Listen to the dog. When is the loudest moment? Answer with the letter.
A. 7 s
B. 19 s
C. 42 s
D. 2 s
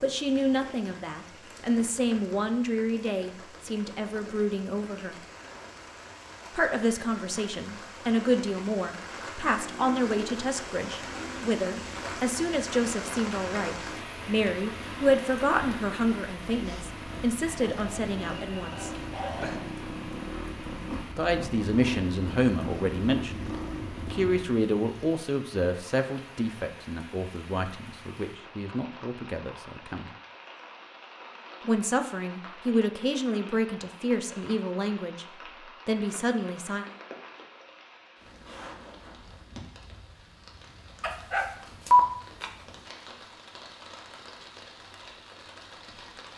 C.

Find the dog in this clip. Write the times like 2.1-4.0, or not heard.
17.4-19.6, 41.0-42.5.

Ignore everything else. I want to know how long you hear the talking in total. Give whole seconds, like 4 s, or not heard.
31 s.